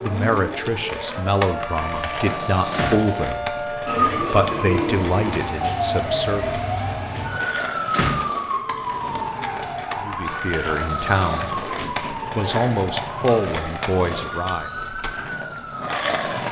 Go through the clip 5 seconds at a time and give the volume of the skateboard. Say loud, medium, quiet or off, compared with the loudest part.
loud, medium, loud, loud.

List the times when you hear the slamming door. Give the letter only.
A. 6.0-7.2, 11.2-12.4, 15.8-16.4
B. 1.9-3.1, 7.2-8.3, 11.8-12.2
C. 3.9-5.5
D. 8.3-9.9
B.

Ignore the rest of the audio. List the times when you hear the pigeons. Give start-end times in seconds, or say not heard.
3.9-5.5.